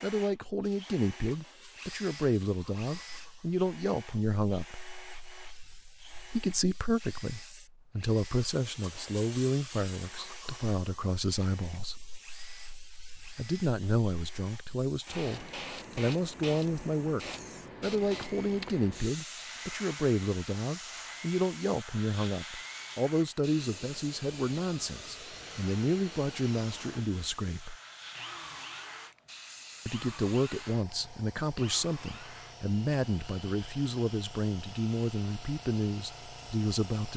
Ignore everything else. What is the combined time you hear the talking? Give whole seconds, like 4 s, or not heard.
32 s.